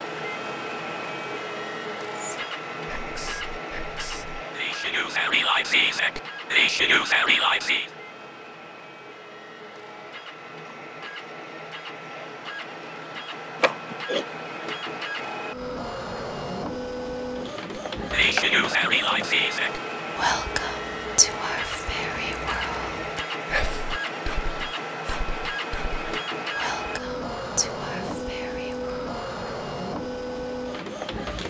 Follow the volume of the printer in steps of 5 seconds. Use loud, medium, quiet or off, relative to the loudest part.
loud, medium, medium, loud, loud, loud, loud.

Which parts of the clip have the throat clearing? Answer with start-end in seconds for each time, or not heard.
13.6-14.2.